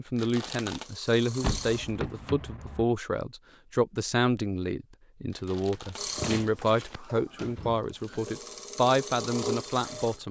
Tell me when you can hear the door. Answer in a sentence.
The door can be heard from 1.4 to 2.9 s and from 6.2 to 8.2 s.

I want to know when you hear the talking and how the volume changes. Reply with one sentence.
The talking can be heard from 0.0 to 10.2 s, at a steady volume.